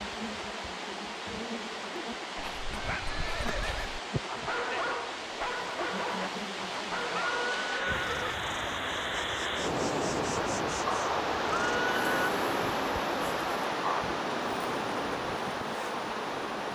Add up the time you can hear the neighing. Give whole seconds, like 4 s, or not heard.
3 s.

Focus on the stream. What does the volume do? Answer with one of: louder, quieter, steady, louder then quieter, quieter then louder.
louder.